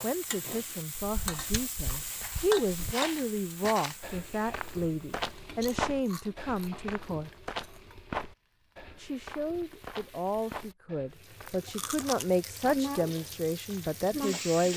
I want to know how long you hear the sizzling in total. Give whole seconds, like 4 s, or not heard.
15 s.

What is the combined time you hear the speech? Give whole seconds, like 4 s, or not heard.
13 s.